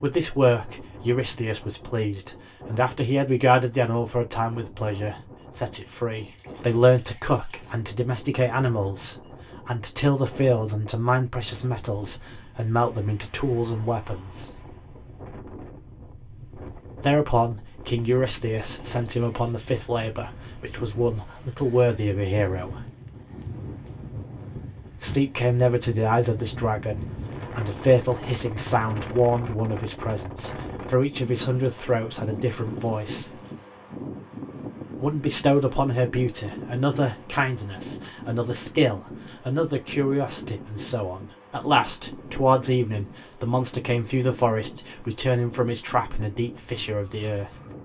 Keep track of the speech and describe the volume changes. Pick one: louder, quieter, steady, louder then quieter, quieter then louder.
steady.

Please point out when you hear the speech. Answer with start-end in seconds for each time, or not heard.
0.0-14.5, 16.9-22.9, 25.0-33.4, 35.0-47.5.